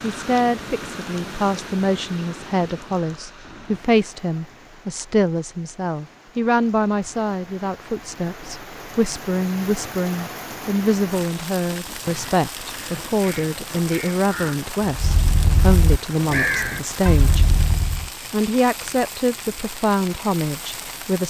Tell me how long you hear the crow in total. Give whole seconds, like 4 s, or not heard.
6 s.